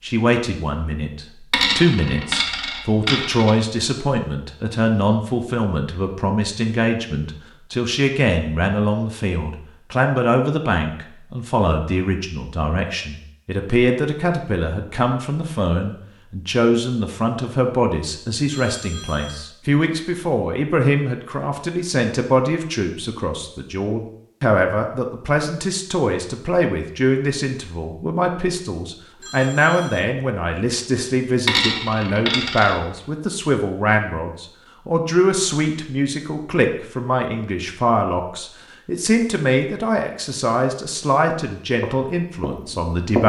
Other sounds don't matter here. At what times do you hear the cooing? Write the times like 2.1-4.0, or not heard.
not heard.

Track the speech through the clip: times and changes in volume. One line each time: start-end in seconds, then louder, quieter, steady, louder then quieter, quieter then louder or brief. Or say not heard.
0.0-43.2 steady.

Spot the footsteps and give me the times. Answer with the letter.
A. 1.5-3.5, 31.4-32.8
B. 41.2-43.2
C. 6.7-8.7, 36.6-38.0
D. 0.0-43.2
B.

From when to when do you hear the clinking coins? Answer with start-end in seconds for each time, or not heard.
1.5-3.5, 31.4-32.8.